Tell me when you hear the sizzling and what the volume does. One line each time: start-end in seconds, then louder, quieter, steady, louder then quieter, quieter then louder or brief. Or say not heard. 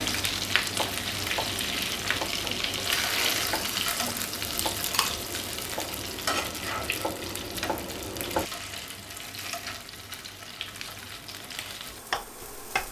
0.0-12.8 quieter.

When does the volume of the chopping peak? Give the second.
8 s.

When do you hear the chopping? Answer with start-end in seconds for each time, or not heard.
0.1-8.5.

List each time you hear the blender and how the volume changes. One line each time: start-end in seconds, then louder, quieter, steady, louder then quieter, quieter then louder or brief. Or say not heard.
not heard.